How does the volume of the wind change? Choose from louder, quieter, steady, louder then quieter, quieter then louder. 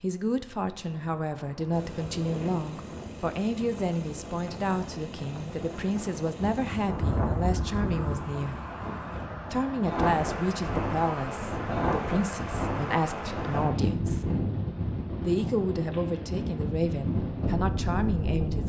louder.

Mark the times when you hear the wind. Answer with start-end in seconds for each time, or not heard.
0.0-18.6.